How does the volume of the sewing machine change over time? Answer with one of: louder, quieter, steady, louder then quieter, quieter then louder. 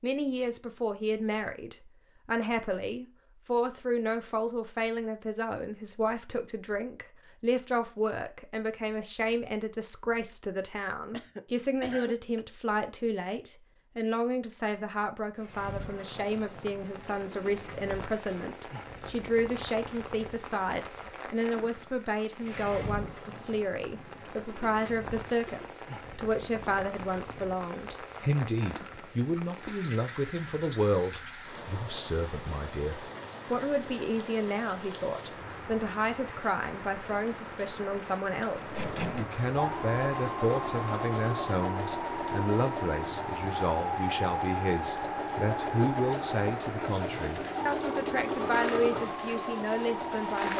steady.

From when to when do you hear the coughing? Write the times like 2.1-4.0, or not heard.
11.1-12.4.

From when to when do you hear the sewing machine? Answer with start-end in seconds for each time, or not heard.
38.5-50.5.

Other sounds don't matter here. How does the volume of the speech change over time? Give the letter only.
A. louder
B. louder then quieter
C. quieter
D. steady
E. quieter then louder
D.